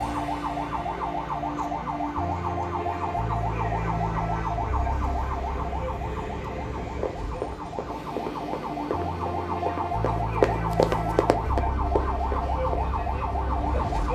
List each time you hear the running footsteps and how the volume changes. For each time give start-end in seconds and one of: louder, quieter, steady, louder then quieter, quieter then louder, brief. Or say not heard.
6.9-12.9 louder then quieter.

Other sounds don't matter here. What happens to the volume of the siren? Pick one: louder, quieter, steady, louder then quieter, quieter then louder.
quieter then louder.